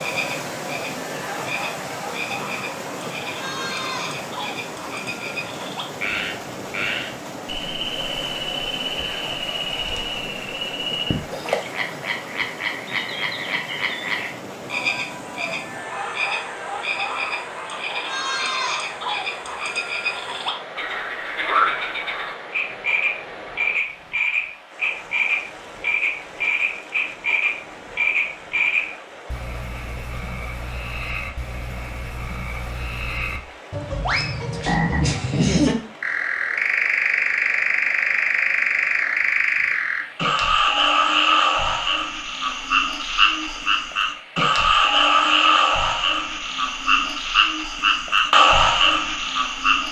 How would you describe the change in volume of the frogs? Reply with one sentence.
The volume of the frogs goes up.